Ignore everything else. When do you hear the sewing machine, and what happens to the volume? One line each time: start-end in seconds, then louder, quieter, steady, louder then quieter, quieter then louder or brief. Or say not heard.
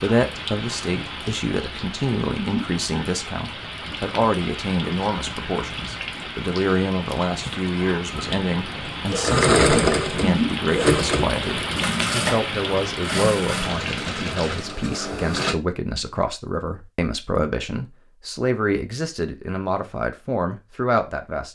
8.1-15.6 quieter.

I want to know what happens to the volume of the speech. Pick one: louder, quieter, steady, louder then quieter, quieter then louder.
steady.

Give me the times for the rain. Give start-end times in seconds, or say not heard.
0.0-14.8.